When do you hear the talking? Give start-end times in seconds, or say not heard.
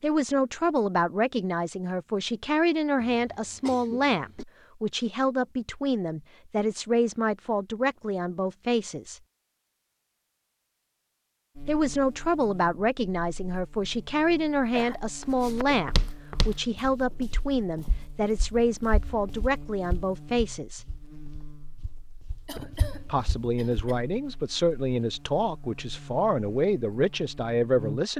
0.0-9.2, 11.7-20.9, 23.1-28.1.